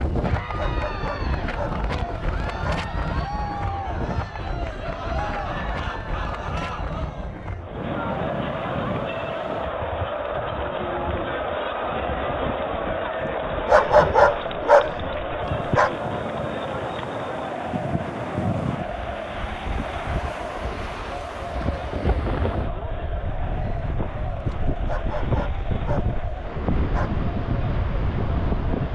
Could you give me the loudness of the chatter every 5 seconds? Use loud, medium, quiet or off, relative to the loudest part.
medium, loud, loud, loud, medium, medium.